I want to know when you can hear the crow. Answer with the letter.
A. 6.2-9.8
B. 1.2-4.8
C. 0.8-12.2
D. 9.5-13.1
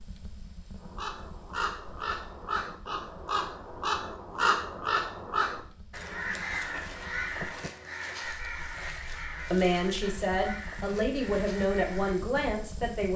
C.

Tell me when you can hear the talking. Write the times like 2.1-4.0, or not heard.
9.5-13.1.